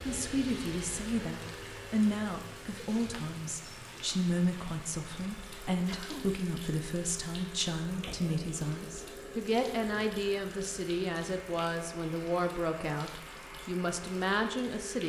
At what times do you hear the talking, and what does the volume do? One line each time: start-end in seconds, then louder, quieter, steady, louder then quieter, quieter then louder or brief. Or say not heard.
0.1-15.0 steady.